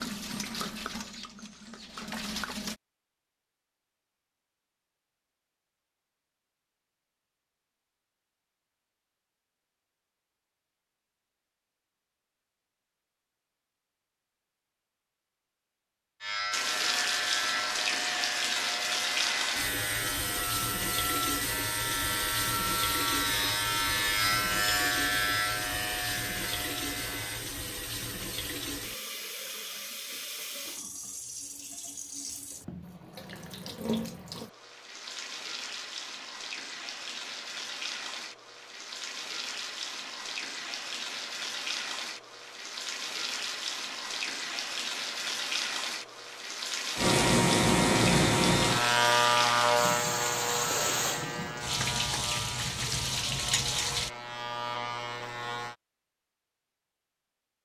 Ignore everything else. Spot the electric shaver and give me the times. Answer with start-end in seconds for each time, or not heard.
16.2-27.4, 47.0-55.8.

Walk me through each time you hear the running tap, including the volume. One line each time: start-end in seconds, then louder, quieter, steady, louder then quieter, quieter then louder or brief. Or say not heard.
0.0-2.8 brief
16.5-54.1 quieter then louder.